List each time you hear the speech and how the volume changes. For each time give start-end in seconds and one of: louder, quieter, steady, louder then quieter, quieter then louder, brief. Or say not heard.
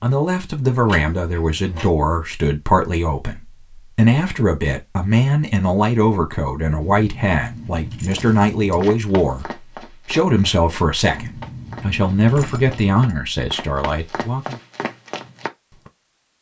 0.0-14.6 steady.